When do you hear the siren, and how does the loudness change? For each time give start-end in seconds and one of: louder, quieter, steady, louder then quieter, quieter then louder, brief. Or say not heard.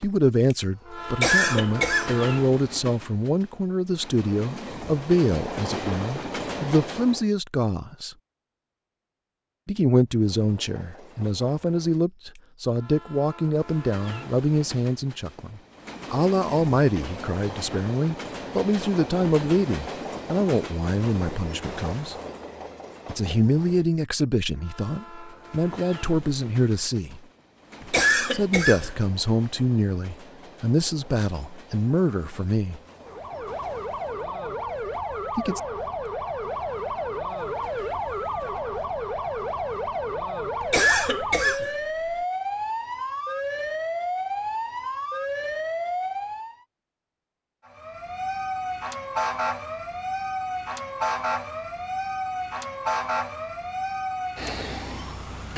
33.0-46.5 steady
47.6-55.5 steady.